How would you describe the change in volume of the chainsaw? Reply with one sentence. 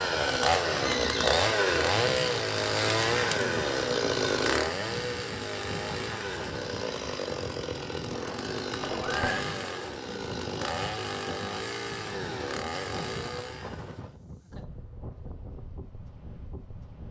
The loudness of the chainsaw goes down.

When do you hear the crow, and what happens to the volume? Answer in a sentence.
You can't hear the crow here.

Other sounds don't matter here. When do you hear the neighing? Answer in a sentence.
You can hear the neighing from 0.8 to 1.4 s and from 8.8 to 9.4 s.